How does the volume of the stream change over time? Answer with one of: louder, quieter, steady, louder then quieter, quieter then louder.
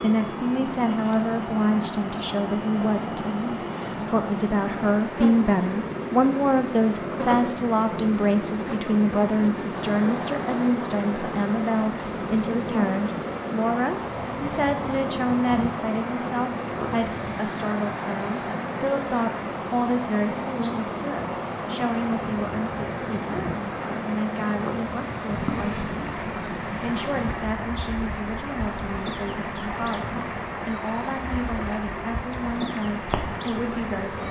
steady.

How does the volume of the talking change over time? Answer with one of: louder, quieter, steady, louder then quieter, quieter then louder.
quieter.